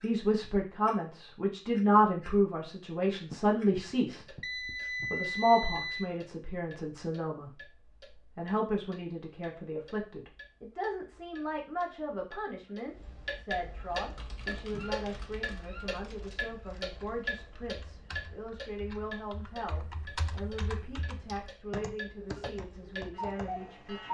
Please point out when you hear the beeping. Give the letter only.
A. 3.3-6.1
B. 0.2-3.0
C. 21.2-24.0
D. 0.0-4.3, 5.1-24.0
A.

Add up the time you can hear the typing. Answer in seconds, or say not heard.
10 s.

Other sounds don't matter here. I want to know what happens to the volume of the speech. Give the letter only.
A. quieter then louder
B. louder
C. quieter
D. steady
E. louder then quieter
C.